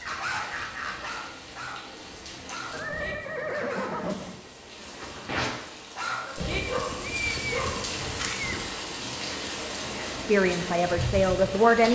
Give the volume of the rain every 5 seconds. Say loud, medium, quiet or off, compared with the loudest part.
medium, loud, loud.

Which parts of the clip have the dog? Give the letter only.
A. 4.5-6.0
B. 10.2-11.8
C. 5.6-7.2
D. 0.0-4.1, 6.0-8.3
D.